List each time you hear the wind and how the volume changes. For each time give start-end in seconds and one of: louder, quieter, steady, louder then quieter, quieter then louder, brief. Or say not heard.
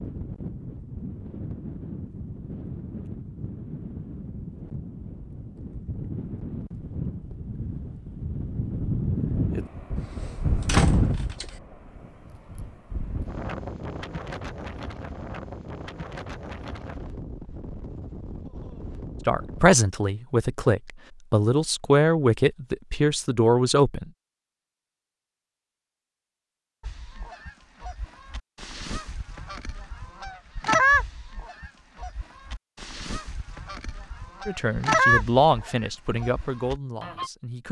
0.0-19.8 louder then quieter.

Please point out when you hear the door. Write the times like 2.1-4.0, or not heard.
9.9-11.5.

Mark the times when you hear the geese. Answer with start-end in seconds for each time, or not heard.
26.8-37.3.